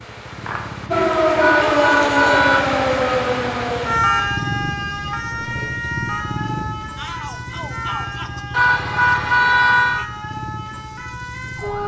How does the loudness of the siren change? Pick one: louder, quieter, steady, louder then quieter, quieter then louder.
quieter.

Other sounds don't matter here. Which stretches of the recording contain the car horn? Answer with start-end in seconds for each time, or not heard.
1.4-2.6, 8.5-10.1.